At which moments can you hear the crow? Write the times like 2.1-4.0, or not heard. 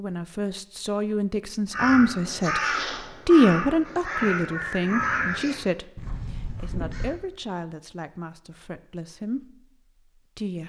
1.7-7.2.